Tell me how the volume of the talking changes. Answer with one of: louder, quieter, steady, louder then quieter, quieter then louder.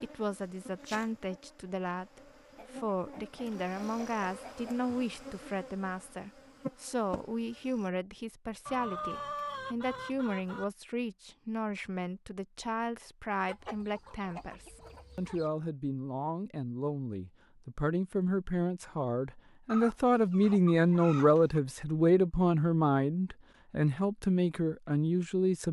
louder.